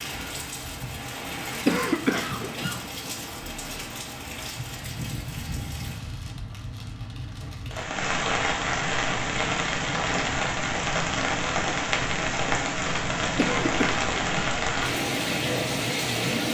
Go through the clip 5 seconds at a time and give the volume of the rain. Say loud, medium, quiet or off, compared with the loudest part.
medium, loud, loud, loud.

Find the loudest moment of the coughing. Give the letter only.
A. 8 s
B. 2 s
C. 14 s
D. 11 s
B.